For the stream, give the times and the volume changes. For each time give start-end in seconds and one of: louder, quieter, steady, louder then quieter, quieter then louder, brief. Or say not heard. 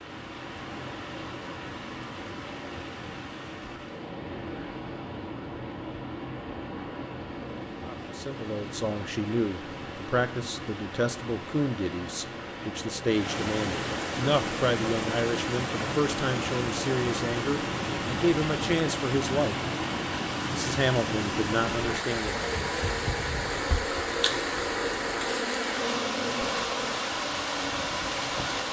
0.0-28.6 louder.